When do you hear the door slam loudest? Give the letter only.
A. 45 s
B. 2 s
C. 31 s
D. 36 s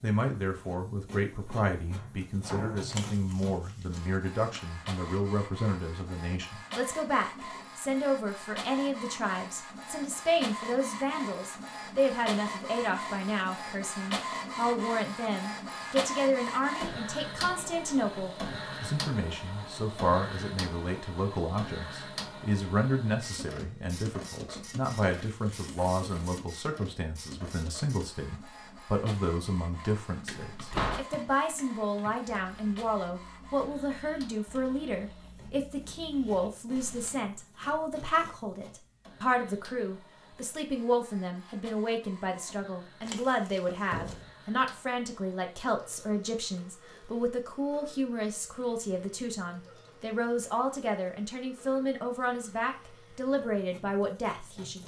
C.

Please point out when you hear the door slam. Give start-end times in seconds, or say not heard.
1.3-2.9, 30.3-31.1, 43.7-44.3.